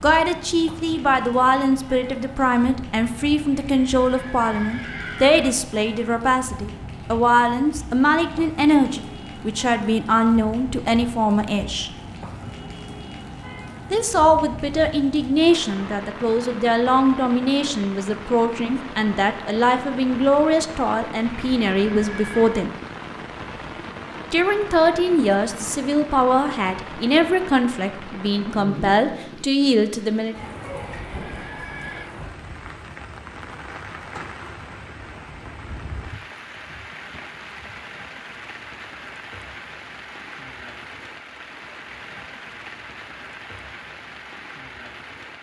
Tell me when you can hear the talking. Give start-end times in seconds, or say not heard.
0.0-11.9, 13.9-22.7, 24.3-30.4.